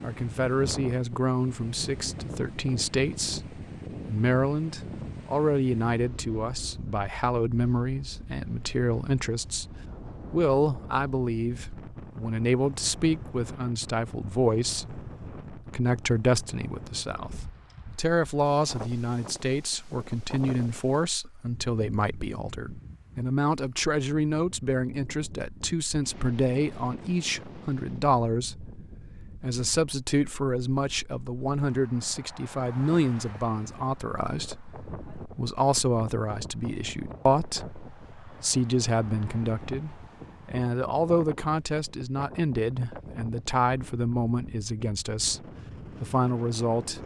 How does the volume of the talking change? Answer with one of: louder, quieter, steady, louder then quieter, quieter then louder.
steady.